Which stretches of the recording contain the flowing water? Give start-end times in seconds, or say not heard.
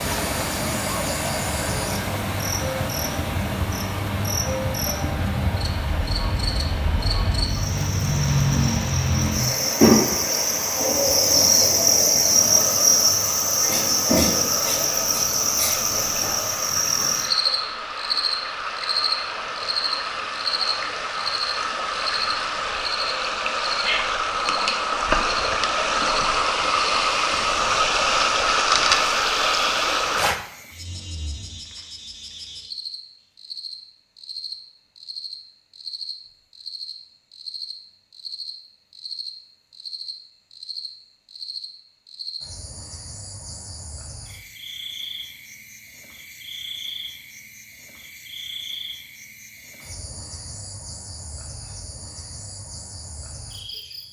0.0-30.4.